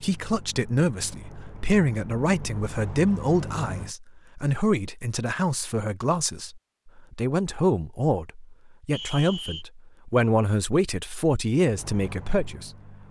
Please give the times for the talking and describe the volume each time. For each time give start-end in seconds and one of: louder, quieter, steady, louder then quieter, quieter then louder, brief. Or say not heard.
0.0-12.9 steady.